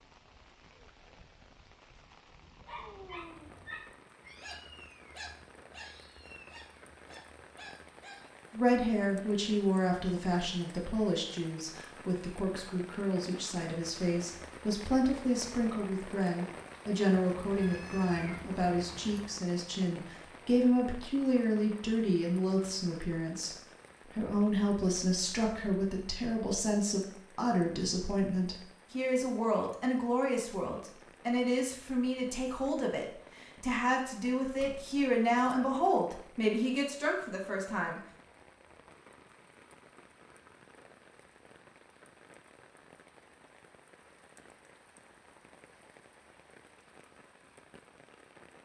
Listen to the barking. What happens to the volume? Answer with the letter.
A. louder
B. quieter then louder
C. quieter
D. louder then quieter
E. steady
C.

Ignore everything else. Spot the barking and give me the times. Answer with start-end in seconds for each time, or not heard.
2.6-8.3.